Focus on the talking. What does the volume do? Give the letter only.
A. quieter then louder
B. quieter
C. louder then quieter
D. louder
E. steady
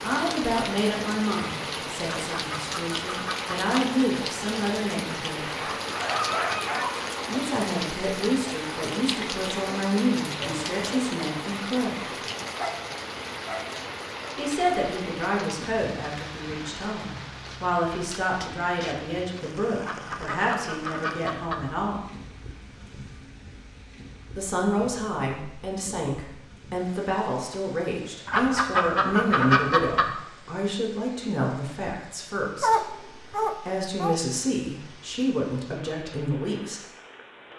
E.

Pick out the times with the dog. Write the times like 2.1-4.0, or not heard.
5.5-7.2, 12.6-14.3, 32.6-34.2.